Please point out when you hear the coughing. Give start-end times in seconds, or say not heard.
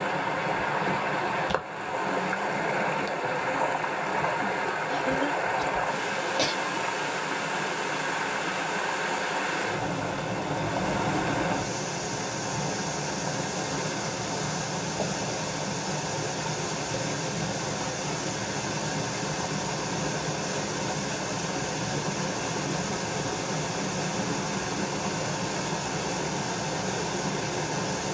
4.9-6.5.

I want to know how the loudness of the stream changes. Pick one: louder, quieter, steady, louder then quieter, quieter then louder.
steady.